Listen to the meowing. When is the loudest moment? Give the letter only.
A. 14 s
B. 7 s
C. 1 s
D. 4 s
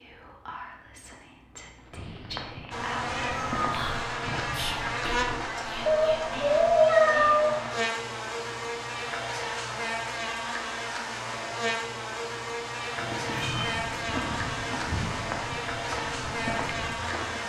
B.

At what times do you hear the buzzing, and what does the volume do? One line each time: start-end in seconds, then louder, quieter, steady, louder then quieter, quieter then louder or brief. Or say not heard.
2.7-17.4 steady.